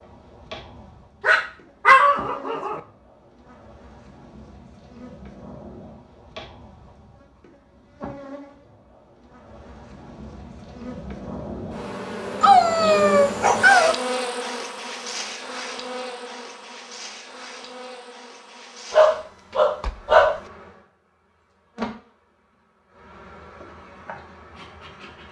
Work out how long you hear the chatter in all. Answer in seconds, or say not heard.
not heard.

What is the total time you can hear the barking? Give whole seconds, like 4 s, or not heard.
5 s.